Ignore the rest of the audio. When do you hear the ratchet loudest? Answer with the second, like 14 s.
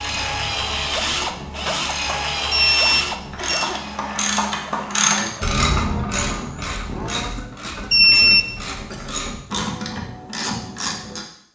5 s.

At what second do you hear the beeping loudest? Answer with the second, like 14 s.
8 s.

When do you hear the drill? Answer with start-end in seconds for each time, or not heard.
0.0-7.4.